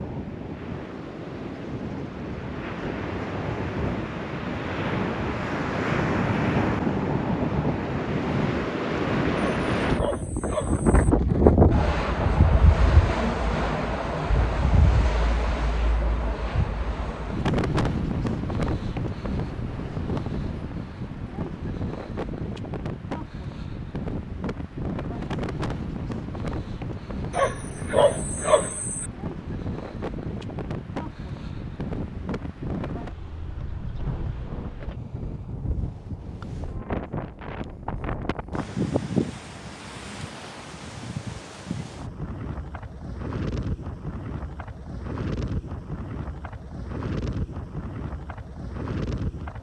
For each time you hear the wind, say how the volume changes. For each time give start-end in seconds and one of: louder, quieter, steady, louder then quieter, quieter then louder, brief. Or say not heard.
0.0-49.5 quieter.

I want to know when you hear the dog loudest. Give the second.
28 s.